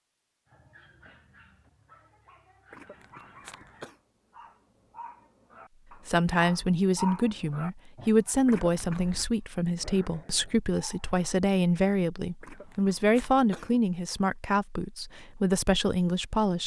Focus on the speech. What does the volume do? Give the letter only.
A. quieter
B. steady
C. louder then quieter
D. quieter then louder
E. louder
B.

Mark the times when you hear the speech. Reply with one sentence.
The speech can be heard from 6.0 to 16.6 s.